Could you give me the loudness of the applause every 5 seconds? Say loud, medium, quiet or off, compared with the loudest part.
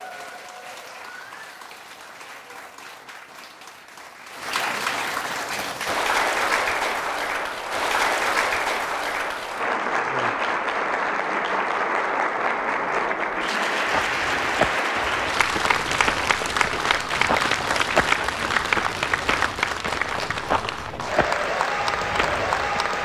medium, loud, loud, loud, loud.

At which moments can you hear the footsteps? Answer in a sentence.
You can hear the footsteps from 13.9 to 22.9 s.